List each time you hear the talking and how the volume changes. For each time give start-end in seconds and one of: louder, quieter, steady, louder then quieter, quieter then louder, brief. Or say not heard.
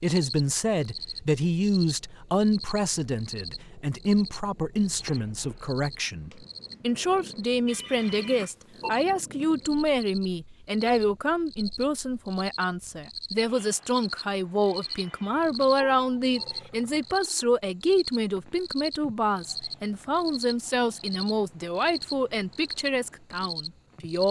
0.0-24.2 steady.